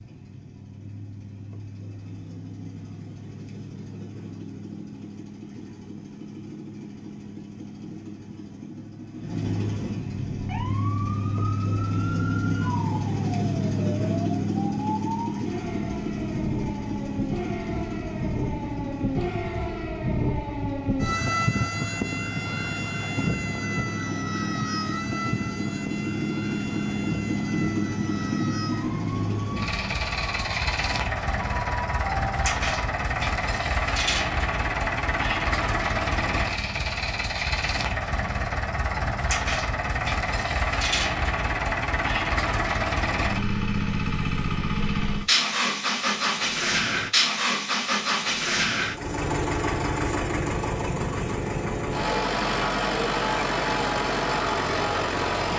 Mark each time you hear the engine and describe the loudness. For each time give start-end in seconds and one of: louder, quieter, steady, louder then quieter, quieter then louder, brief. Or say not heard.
0.0-55.5 louder.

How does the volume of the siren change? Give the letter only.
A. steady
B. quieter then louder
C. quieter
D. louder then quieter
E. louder
D.